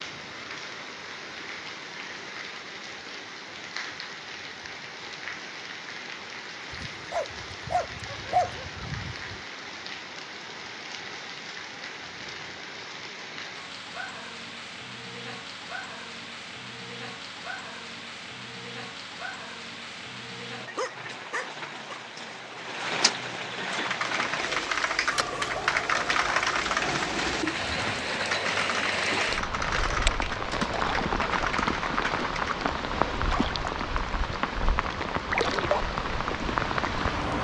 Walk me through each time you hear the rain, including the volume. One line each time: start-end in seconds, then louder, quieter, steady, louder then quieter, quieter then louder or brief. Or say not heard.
0.0-37.3 louder.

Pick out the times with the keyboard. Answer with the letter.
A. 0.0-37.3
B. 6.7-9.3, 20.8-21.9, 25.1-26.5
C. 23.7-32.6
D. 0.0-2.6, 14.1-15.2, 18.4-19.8
C.